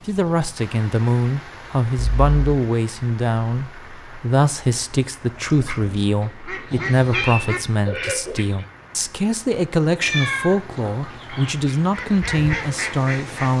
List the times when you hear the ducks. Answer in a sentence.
You can hear the ducks from 5.2 to 8.7 s and from 11.1 to 13.5 s.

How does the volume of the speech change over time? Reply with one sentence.
The volume of the speech stays about the same.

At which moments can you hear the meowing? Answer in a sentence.
The meowing can be heard from 1.9 to 2.4 s, from 6.7 to 7.5 s and from 10.0 to 11.6 s.